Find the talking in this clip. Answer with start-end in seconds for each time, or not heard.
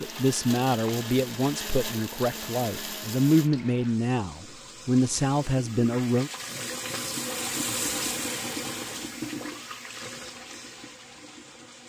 0.0-6.3.